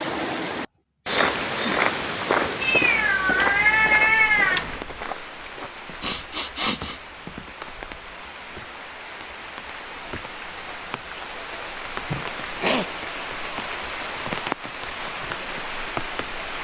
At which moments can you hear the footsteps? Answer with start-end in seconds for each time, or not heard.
1.1-7.9.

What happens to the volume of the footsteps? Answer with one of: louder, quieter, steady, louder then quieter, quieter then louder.
quieter.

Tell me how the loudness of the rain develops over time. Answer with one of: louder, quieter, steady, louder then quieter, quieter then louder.
quieter then louder.